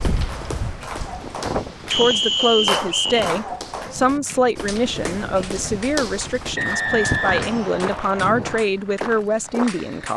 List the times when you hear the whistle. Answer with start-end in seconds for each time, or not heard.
1.9-3.3, 6.5-8.3.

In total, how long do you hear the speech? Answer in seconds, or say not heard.
8 s.